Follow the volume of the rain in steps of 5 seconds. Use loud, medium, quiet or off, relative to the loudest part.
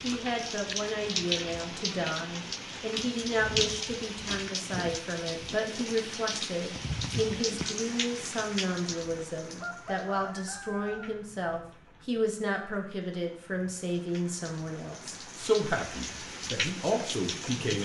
loud, loud, quiet, loud.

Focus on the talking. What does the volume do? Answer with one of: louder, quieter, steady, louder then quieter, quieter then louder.
steady.